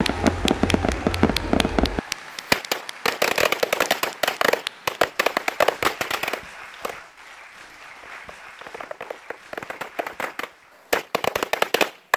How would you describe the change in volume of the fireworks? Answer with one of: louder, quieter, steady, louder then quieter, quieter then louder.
quieter then louder.